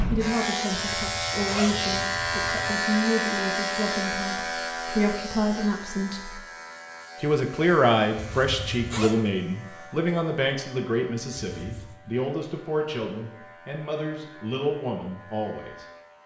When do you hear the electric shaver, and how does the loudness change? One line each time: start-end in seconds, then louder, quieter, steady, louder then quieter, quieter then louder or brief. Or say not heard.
0.0-16.2 quieter.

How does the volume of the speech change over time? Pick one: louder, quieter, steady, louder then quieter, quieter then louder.
louder then quieter.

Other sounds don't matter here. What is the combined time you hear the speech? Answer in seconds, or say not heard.
15 s.